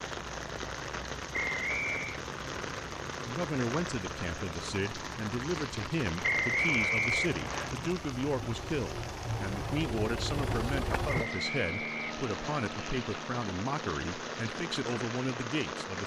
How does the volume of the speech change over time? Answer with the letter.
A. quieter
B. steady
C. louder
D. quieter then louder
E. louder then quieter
B.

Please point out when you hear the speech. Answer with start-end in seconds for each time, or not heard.
3.2-16.0.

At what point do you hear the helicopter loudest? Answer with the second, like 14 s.
11 s.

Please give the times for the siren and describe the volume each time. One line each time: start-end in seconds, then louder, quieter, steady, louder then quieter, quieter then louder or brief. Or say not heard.
not heard.